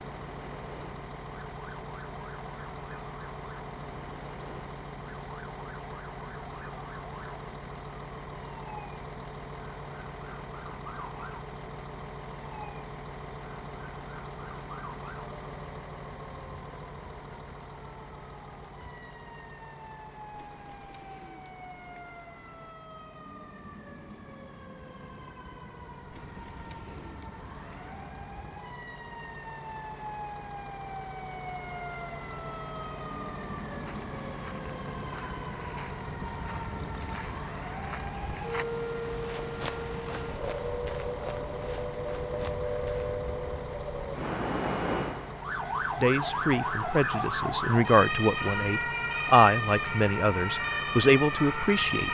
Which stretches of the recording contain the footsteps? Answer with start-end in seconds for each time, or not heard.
33.8-43.1.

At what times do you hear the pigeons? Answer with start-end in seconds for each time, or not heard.
20.3-22.8, 26.1-28.1.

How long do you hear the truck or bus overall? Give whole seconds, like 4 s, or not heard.
52 s.